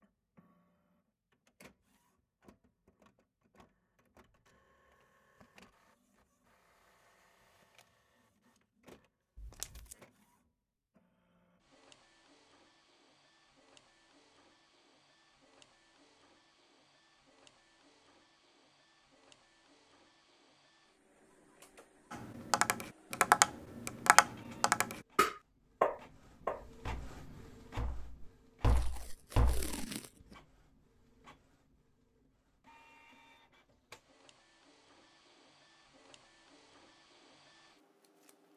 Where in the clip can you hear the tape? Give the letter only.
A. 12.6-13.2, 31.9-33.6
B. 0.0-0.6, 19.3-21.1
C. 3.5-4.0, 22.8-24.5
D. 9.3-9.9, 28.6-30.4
D.